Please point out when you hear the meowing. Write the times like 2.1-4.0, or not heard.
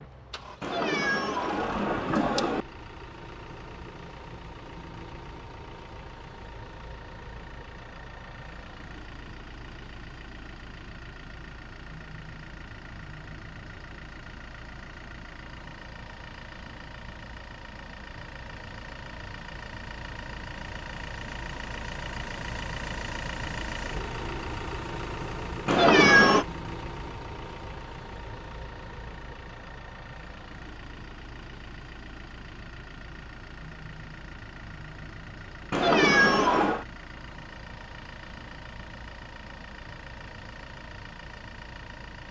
0.6-2.6, 25.6-26.4, 35.7-36.9.